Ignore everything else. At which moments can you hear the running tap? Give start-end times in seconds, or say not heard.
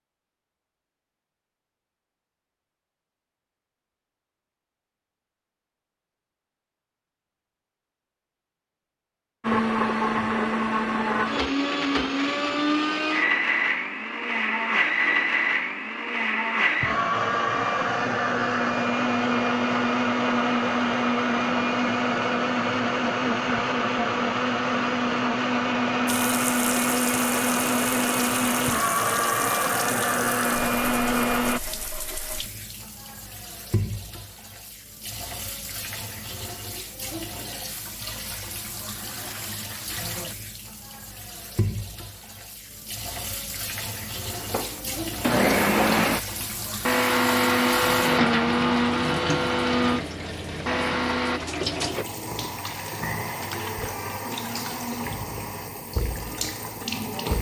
26.1-57.3.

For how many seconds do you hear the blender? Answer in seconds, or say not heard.
29 s.